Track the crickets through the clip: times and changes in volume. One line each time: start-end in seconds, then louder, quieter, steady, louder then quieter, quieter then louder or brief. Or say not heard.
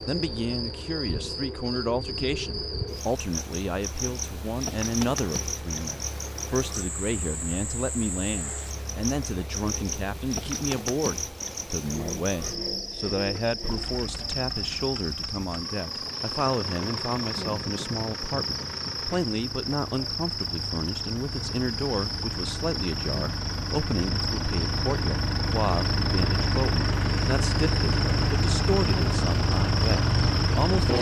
0.0-30.9 steady.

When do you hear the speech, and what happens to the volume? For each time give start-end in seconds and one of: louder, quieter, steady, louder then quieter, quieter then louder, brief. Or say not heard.
0.1-30.9 steady.